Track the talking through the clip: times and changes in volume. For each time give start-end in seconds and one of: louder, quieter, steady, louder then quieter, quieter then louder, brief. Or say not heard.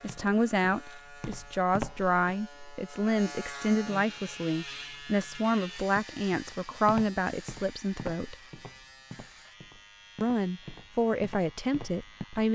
0.0-8.3 steady
10.2-12.4 brief.